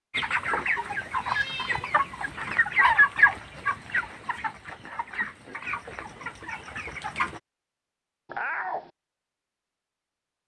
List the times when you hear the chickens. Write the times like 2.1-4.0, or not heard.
0.1-7.4.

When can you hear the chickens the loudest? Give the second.
3 s.